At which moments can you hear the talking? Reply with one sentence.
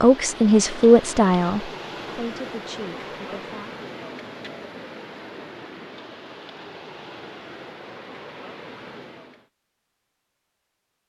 The talking can be heard from 0.0 to 3.7 s.